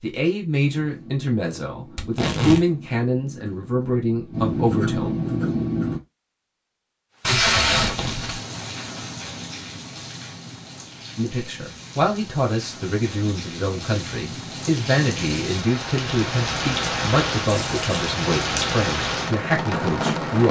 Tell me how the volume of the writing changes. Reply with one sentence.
The volume of the writing goes up.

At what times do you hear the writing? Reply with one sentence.
You can hear the writing from 0.6 to 6.0 s.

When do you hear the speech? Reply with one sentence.
You can hear the speech from 0.0 to 5.2 s and from 11.2 to 20.4 s.